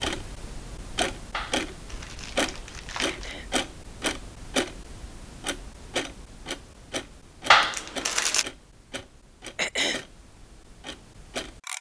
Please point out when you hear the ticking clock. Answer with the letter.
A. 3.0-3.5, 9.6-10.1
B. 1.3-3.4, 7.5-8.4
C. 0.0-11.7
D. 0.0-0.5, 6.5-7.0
C.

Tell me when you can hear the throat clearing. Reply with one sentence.
You can hear the throat clearing from 3.0 to 3.5 s and from 9.6 to 10.1 s.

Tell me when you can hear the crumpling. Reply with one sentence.
The crumpling can be heard from 1.3 to 3.4 s and from 7.5 to 8.4 s.